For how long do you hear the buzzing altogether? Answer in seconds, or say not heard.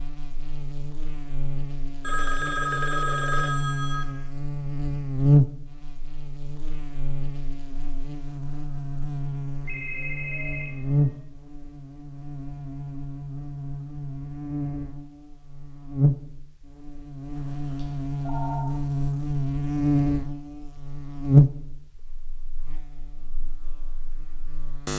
25 s.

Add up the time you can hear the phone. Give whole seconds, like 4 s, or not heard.
5 s.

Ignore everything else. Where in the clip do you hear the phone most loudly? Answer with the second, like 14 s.
3 s.